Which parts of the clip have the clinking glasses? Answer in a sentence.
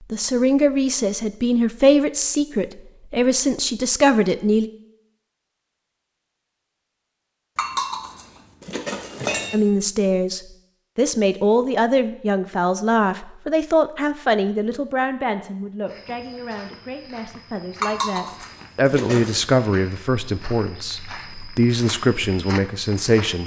The clinking glasses can be heard from 7.5 to 9.6 s and from 17.8 to 19.4 s.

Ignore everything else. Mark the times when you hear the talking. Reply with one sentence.
The talking can be heard from 0.1 to 4.7 s and from 9.5 to 23.4 s.